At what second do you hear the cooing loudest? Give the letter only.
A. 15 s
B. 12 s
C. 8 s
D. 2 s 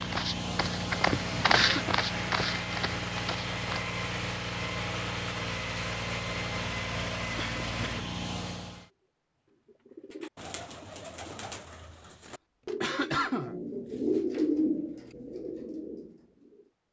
A.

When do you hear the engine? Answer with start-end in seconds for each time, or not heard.
0.0-8.9.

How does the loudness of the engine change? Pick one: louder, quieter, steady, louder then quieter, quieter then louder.
steady.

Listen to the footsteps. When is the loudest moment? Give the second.
2 s.